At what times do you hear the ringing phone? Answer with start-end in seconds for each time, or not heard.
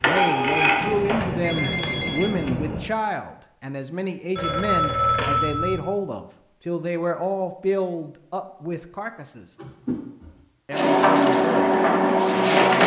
0.8-2.8, 4.3-5.8, 9.6-10.3.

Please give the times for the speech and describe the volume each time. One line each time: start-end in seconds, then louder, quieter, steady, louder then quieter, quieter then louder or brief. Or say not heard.
0.0-9.4 steady
10.7-12.8 brief.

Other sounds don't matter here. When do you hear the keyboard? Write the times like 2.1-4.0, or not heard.
not heard.